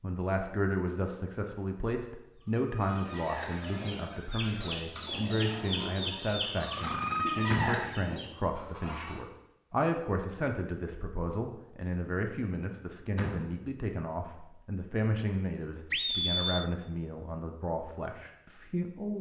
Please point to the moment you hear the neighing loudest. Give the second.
16 s.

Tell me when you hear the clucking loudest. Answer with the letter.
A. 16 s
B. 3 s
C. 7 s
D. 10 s
C.